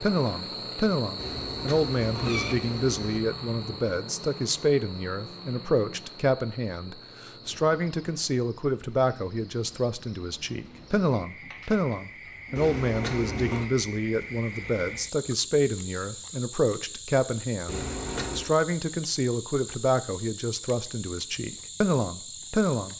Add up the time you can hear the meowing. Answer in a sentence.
The meowing can be heard for 4 seconds in total.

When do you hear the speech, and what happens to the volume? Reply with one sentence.
You can hear the speech from 0.0 to 22.9 s, at a steady volume.